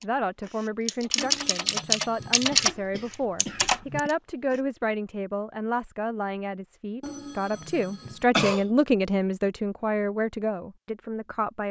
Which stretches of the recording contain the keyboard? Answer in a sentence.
The keyboard can be heard from 0.0 to 4.6 s.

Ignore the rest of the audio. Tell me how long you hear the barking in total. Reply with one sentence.
The barking can't be heard in this clip.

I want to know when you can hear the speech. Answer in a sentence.
You can hear the speech from 0.0 to 11.6 s.